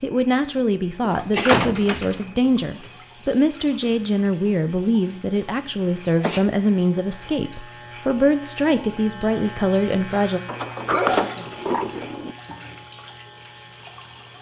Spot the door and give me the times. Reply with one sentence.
The door can be heard from 1.1 to 2.9 s and from 10.4 to 12.3 s.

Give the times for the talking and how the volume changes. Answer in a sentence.
You can hear the talking from 0.0 to 10.4 s, at a steady volume.